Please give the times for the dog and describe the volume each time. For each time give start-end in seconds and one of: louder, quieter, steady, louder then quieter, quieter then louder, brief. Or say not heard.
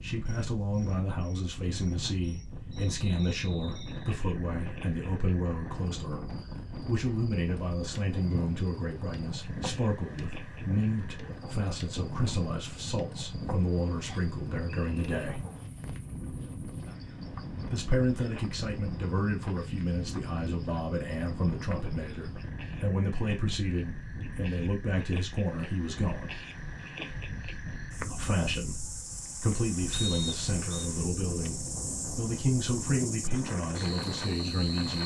not heard.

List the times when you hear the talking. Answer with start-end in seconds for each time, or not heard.
0.0-15.4, 17.7-26.3, 27.9-35.0.